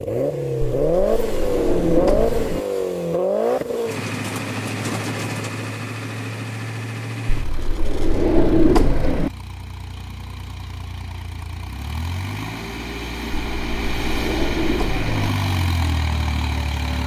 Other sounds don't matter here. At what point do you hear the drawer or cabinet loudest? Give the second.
9 s.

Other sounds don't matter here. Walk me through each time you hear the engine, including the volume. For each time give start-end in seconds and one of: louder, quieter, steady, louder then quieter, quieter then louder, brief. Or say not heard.
0.0-17.0 quieter then louder.